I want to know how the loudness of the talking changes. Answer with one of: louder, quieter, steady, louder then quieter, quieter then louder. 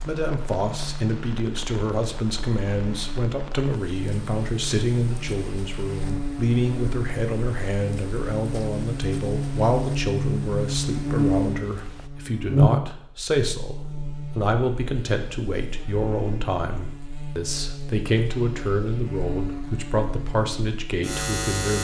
steady.